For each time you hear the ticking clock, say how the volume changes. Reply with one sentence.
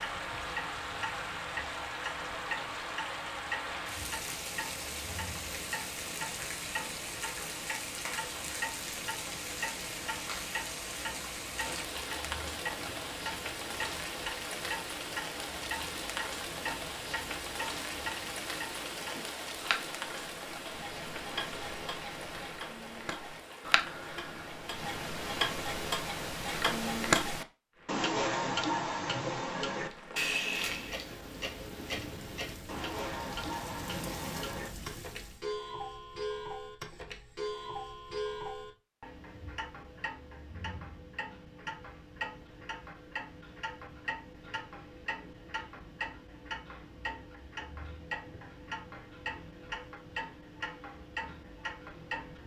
You can hear the ticking clock from 0.0 to 52.4 s, getting louder then quieter.